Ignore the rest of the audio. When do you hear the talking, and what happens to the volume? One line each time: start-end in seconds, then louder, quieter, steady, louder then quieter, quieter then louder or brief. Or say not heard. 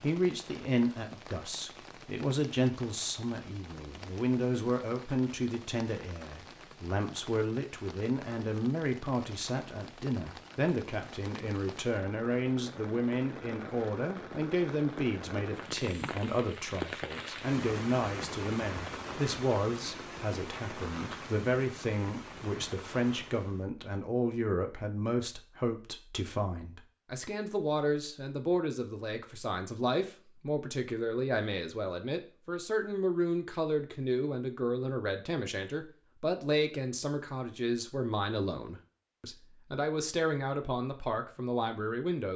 0.0-42.3 steady.